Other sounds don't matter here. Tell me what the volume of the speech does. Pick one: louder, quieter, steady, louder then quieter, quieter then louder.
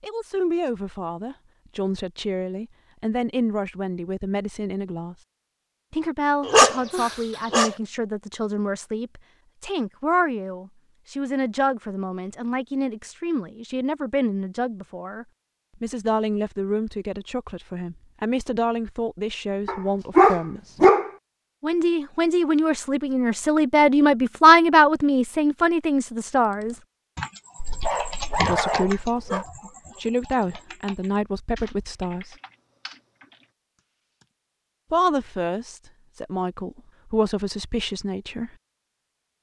louder then quieter.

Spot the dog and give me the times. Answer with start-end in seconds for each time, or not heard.
6.5-7.8, 19.6-21.1, 27.6-29.4.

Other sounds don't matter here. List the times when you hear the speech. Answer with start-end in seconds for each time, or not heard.
0.0-5.2, 5.9-20.6, 21.6-26.8, 28.4-32.4, 34.9-38.5.